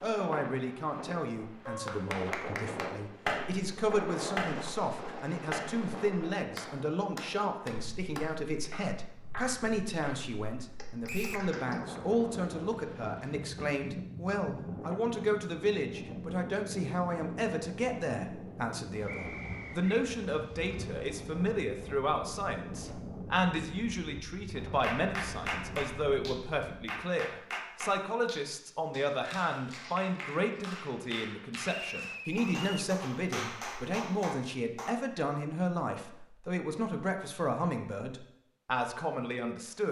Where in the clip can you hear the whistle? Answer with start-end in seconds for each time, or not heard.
11.1-11.5, 19.1-19.9, 31.6-32.9.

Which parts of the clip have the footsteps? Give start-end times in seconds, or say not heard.
not heard.